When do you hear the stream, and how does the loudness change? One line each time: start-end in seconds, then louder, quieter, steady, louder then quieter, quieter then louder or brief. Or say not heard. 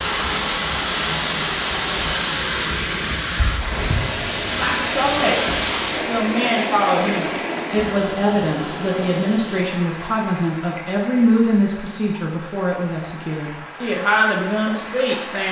0.0-15.4 quieter.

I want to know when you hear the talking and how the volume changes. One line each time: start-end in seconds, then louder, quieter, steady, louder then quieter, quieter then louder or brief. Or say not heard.
4.5-15.4 steady.